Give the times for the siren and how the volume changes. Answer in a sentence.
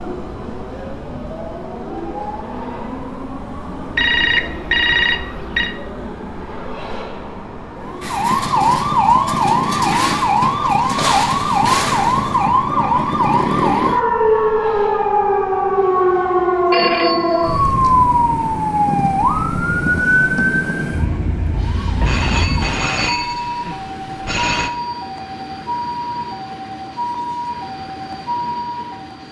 The siren can be heard from 7.8 to 29.2 s, getting quieter.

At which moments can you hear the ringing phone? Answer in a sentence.
You can hear the ringing phone from 4.0 to 5.7 s, from 16.7 to 17.7 s and from 22.0 to 24.7 s.